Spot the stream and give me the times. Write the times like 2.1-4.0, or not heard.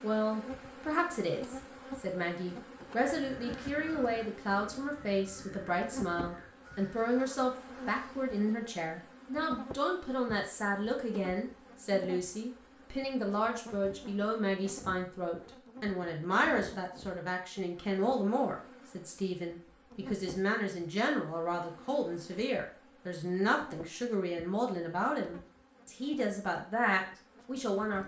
not heard.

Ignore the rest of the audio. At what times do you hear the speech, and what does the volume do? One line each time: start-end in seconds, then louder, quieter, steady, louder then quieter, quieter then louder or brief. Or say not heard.
0.0-28.0 steady.